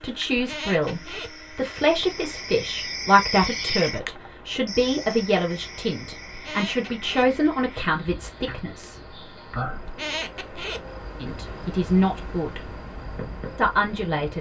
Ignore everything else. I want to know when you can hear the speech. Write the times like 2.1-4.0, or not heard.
0.0-9.0, 11.2-12.7, 13.6-14.3.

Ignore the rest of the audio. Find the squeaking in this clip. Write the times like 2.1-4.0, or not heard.
0.3-1.4, 6.3-7.4, 9.8-10.8.